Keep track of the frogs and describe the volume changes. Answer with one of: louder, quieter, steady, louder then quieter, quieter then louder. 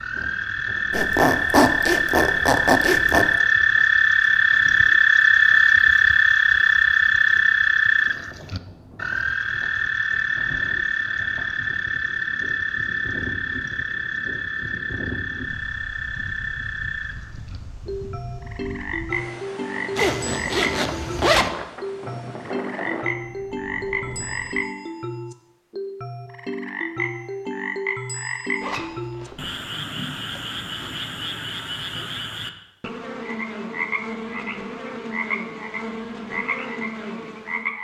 quieter.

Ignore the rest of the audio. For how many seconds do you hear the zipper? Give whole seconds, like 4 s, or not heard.
5 s.